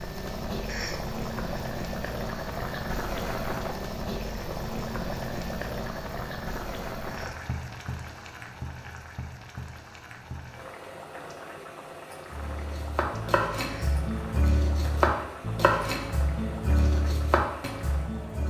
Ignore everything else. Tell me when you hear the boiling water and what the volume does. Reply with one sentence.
You can hear the boiling water from 0.0 to 18.4 s, getting quieter.